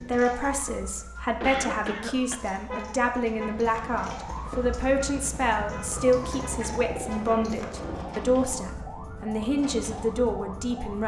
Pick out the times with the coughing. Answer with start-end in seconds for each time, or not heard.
1.4-2.4.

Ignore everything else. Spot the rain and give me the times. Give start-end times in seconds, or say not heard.
not heard.